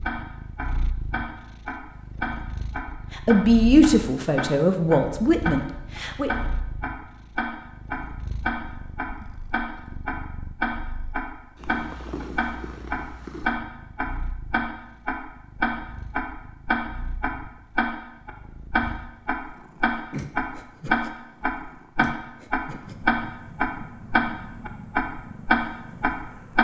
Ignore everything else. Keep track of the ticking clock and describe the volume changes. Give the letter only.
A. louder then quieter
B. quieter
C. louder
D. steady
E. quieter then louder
C.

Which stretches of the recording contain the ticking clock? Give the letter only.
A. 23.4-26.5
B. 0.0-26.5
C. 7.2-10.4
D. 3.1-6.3
B.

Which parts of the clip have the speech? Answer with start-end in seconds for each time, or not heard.
3.1-6.3.